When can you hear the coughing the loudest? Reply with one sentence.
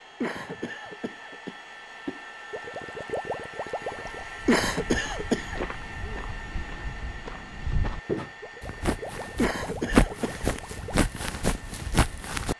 The loudest moment of the coughing is at 5 seconds.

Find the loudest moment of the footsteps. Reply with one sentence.
The volume of the footsteps peaks at 10 seconds.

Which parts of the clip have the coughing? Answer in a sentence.
The coughing can be heard from 0.2 to 2.2 s, from 4.5 to 5.7 s and from 9.3 to 10.6 s.